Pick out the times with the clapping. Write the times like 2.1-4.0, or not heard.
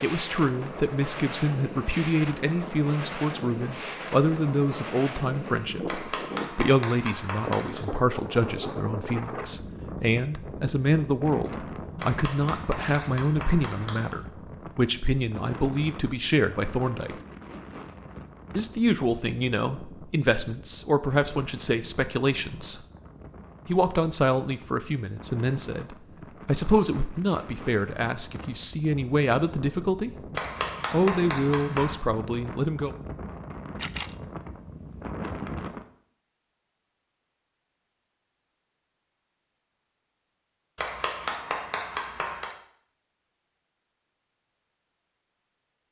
5.8-7.8, 11.9-14.2, 30.4-31.9, 40.8-42.5.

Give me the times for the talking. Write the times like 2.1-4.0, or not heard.
0.0-17.1, 18.6-22.8, 23.6-30.1, 30.9-33.0.